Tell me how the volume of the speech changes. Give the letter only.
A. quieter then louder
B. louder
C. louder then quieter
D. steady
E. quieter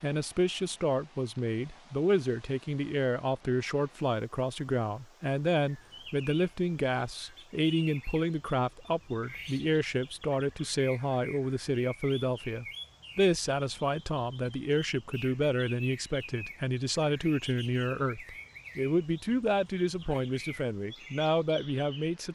D.